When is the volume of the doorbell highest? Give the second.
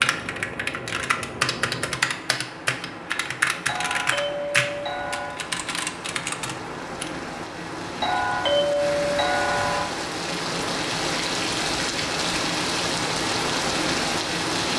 9 s.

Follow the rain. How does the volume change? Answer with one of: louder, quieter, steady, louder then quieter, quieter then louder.
louder.